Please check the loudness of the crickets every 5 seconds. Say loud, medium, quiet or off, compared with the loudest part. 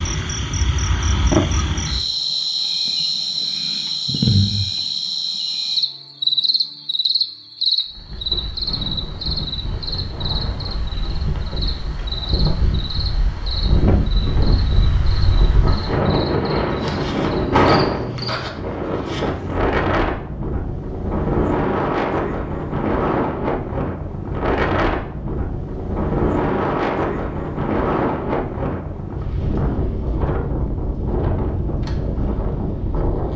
loud, loud, medium, medium, off, off, off.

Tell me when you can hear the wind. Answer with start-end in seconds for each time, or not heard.
7.8-33.3.